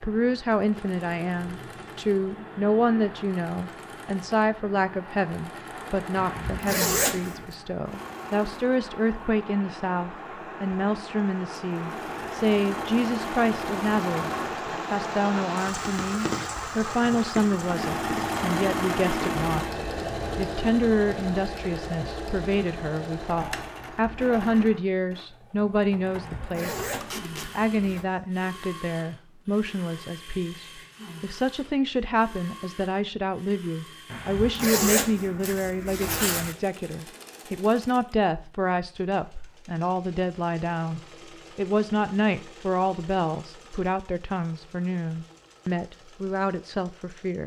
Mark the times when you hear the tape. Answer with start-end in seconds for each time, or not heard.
27.0-27.5.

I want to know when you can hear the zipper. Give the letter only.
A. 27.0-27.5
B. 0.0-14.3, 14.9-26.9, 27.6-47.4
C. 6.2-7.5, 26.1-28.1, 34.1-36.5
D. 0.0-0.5
C.